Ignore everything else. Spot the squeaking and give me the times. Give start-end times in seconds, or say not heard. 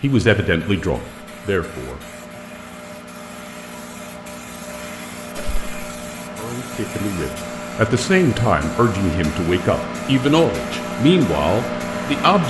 5.3-5.8.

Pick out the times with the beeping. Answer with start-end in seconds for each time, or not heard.
not heard.